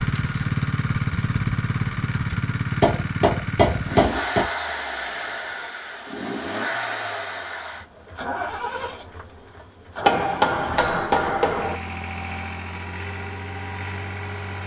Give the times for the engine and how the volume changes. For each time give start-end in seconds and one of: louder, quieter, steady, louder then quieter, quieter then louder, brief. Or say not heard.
0.0-14.6 quieter.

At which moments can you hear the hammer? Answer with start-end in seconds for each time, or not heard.
2.8-4.5, 10.0-11.8.